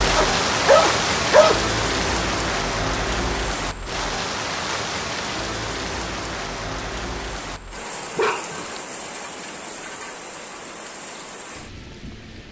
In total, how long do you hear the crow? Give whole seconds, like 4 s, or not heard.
not heard.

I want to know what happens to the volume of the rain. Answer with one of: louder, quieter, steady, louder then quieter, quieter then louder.
quieter.